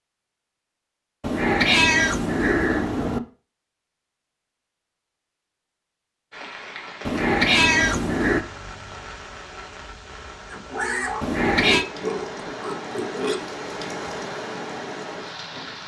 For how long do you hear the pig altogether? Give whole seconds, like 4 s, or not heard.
3 s.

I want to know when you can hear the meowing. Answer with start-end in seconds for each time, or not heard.
1.2-3.2, 7.0-8.4, 11.2-11.8.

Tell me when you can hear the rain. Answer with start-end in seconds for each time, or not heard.
6.3-15.8.